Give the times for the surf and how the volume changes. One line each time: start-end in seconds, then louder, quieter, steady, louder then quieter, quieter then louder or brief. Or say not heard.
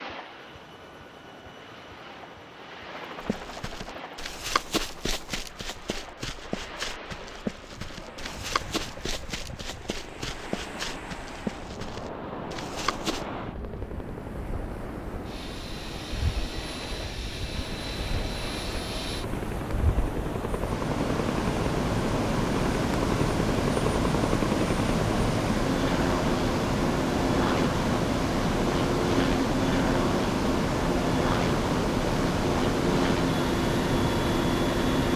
0.0-35.1 louder.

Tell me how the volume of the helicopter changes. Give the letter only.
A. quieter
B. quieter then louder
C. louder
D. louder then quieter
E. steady
C.